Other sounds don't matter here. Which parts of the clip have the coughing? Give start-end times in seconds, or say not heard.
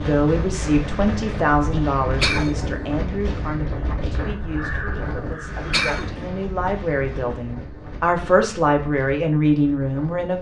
2.2-2.8, 5.7-6.3.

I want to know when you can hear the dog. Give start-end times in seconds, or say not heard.
not heard.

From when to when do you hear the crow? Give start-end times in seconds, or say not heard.
4.2-6.0.